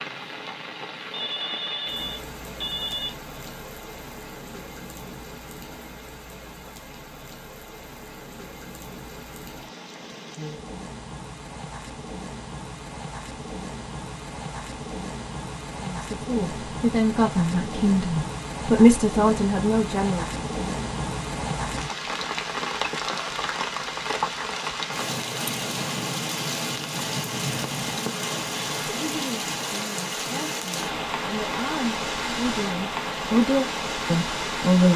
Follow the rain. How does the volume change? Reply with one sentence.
The volume of the rain goes up.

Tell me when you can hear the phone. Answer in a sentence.
The phone can be heard from 1.1 to 3.1 s.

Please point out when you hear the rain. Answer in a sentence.
The rain can be heard from 0.0 to 34.9 s.